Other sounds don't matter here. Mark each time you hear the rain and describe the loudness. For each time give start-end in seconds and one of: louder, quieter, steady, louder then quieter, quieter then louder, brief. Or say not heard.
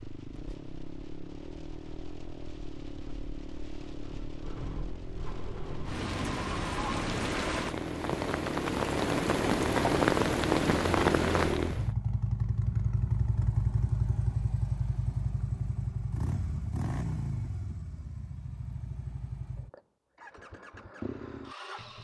0.0-11.9 louder.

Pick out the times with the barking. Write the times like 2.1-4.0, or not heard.
not heard.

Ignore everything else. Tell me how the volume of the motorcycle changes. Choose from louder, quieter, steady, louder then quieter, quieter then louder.
louder then quieter.